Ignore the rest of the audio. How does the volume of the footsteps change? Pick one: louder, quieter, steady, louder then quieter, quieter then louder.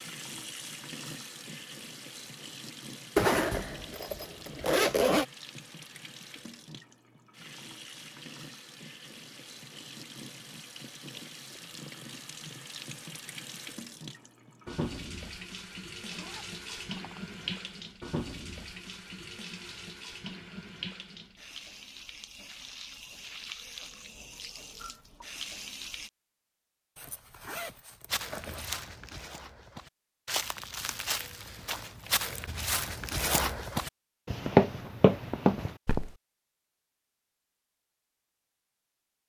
louder.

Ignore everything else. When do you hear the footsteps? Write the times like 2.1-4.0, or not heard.
28.1-36.1.